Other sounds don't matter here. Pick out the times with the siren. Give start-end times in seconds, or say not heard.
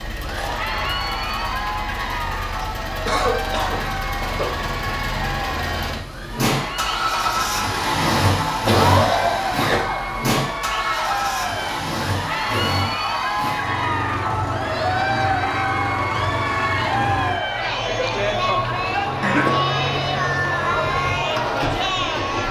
not heard.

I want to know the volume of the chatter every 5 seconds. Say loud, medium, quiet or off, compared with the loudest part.
medium, medium, loud, loud, loud.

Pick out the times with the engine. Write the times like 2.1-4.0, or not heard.
0.0-22.4.